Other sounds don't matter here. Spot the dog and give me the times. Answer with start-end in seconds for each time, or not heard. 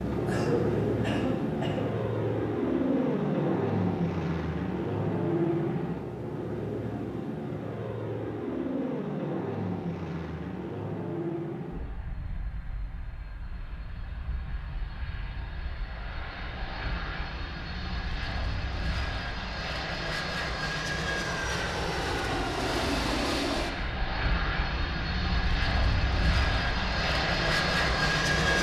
not heard.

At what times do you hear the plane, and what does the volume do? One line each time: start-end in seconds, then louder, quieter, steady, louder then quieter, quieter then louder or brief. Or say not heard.
0.0-28.5 quieter then louder.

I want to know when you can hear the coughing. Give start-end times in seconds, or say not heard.
0.2-1.9.